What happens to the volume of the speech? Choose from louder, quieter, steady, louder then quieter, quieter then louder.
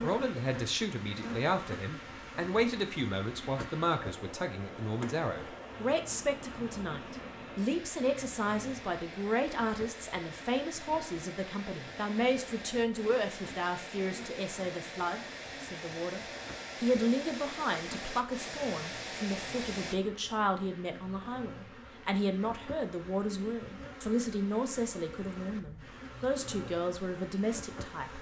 steady.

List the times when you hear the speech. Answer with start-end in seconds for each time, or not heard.
0.0-28.1.